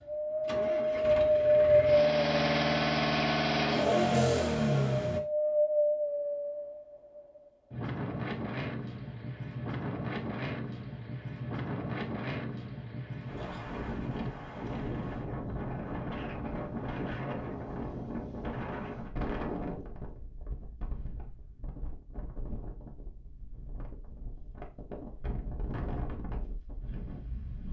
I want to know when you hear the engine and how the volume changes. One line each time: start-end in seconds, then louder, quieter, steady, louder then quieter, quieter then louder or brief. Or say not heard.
0.4-5.2 louder.